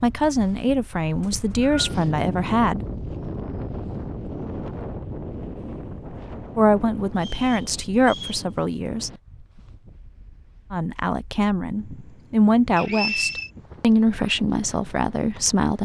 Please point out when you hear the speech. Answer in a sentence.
You can hear the speech from 0.0 to 2.9 s, from 6.5 to 9.1 s and from 10.7 to 15.8 s.